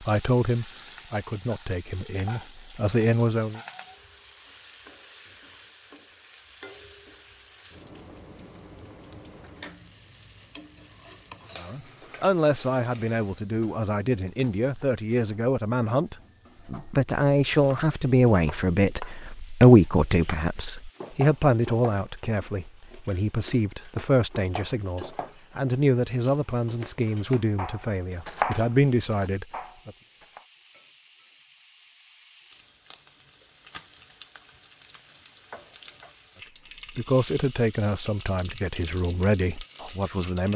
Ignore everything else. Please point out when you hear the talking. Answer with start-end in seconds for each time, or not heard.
0.1-3.6, 11.6-29.9, 37.0-40.5.